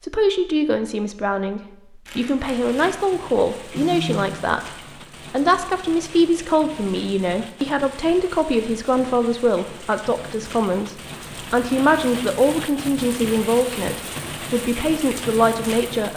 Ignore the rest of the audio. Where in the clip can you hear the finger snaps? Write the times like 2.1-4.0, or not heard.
3.8-4.5.